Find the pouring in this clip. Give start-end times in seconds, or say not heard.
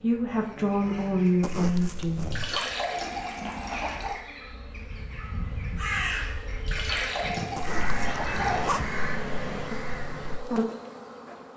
2.3-4.2, 6.7-8.8.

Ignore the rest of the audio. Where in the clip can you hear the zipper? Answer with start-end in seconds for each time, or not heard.
1.4-2.6, 7.5-8.8.